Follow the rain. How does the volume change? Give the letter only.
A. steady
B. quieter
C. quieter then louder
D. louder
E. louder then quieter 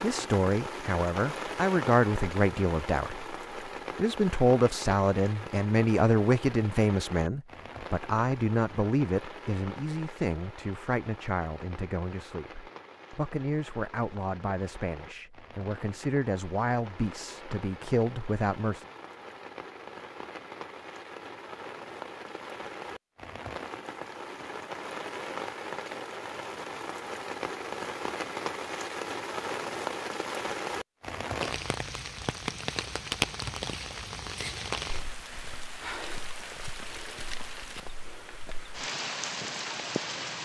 C.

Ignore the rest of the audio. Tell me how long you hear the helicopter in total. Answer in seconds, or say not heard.
not heard.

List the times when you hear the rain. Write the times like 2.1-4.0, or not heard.
0.0-40.3.